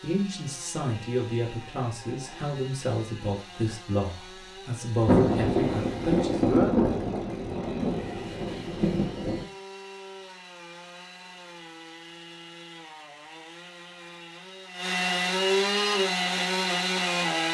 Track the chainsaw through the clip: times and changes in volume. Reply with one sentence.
The chainsaw can be heard from 0.0 to 17.4 s, getting louder.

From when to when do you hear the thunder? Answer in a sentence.
The thunder can be heard from 5.0 to 9.4 s.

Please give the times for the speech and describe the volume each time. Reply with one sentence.
You can hear the speech from 0.0 to 6.5 s, at a steady volume.